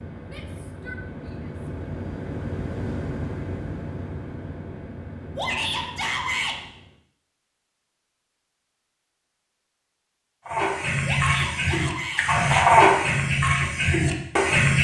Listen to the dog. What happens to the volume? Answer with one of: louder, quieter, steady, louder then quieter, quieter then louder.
louder then quieter.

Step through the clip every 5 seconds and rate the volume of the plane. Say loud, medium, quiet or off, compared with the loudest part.
loud, medium, off.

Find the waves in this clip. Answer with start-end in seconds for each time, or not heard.
not heard.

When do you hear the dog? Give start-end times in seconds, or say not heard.
10.4-14.7.